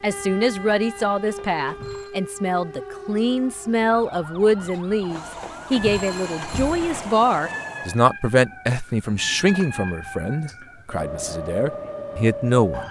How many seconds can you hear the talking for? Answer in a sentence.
You can hear the talking for 13 seconds altogether.